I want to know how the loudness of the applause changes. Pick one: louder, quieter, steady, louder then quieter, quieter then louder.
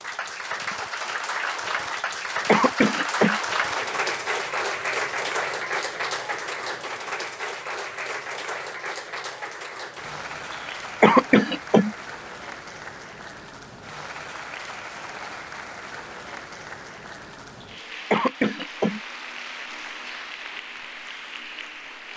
quieter.